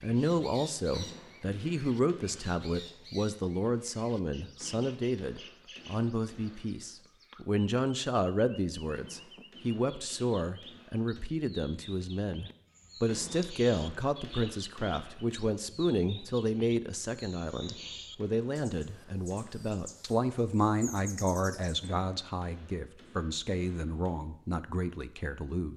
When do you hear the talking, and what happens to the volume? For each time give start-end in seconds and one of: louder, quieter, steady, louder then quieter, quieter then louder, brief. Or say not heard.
0.0-25.7 steady.